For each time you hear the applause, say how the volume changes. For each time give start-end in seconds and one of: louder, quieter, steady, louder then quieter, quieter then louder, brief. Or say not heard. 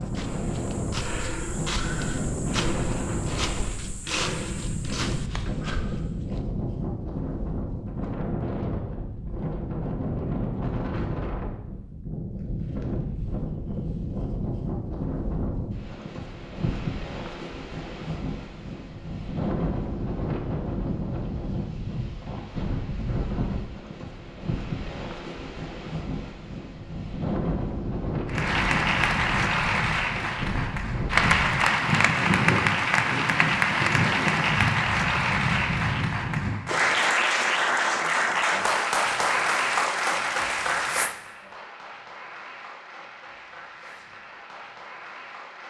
28.2-45.6 quieter.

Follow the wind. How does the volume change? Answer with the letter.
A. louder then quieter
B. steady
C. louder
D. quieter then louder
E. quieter
B.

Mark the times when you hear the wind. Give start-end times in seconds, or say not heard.
0.0-36.5.